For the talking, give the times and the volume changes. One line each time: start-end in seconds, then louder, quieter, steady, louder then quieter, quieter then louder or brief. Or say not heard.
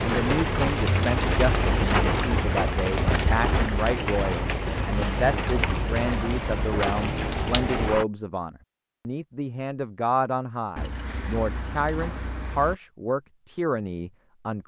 0.0-14.6 steady.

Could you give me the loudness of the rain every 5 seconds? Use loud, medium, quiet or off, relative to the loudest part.
loud, loud, off.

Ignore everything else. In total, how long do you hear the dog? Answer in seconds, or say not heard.
not heard.